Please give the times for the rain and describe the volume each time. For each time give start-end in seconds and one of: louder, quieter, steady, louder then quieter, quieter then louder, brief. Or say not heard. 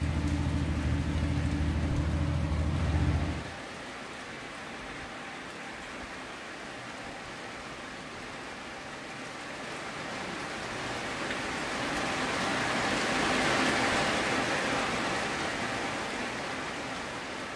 0.0-17.5 louder.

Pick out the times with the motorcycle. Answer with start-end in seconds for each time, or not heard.
0.0-3.5.